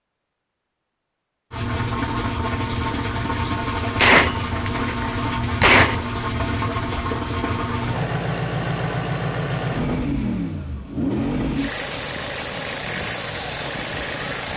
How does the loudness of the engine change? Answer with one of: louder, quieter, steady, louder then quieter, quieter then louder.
steady.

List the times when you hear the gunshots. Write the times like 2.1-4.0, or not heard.
4.0-6.0.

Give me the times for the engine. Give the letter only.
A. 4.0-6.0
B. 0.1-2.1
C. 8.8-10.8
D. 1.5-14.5
D.